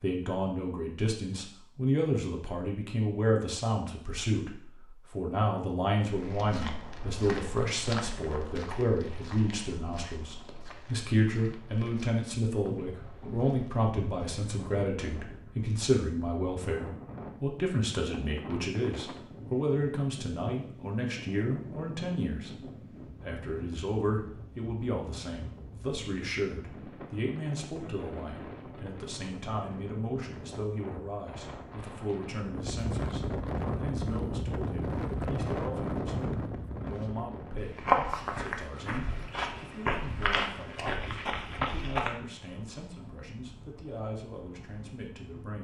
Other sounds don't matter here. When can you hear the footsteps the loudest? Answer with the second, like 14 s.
38 s.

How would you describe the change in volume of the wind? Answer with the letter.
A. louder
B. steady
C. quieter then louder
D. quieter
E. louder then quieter
E.